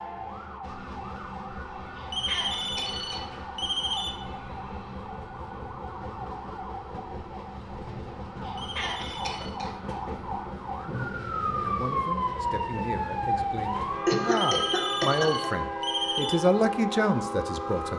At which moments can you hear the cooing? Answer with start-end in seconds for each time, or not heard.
not heard.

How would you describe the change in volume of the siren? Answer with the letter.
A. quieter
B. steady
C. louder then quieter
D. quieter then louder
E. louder
E.